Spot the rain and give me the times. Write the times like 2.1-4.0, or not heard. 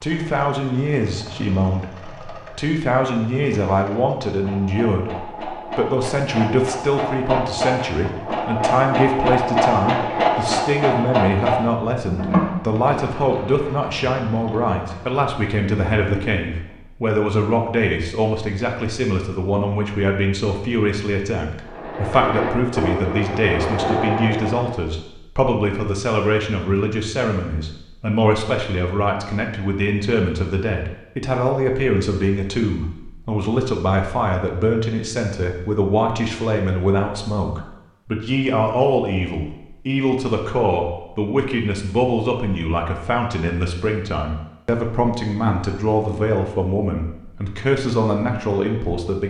not heard.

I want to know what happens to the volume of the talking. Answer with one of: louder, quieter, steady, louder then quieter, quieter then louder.
steady.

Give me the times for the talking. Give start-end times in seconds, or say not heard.
0.0-49.2.